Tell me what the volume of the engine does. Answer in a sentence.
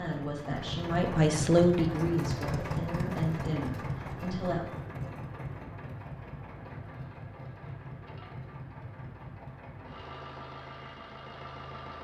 The volume of the engine goes down.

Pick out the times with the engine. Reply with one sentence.
The engine can be heard from 0.0 to 11.9 s.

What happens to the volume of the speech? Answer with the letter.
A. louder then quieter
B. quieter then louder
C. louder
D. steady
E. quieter
A.